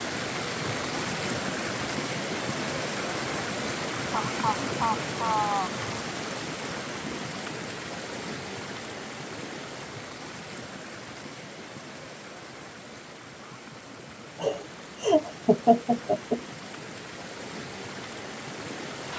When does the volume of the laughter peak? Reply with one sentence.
The volume of the laughter peaks at 16 seconds.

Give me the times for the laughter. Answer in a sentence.
You can hear the laughter from 4.1 to 5.7 s and from 14.4 to 16.4 s.